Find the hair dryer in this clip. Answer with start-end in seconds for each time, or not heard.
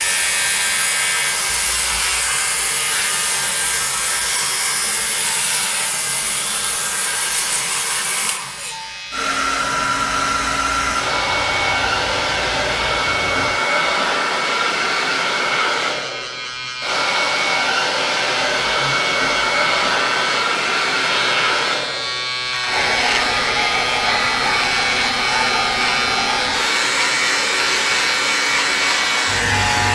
0.0-29.9.